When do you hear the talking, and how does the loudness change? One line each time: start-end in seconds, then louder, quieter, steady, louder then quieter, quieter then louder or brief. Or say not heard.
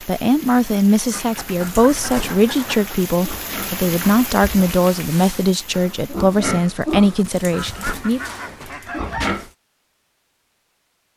0.1-8.2 steady.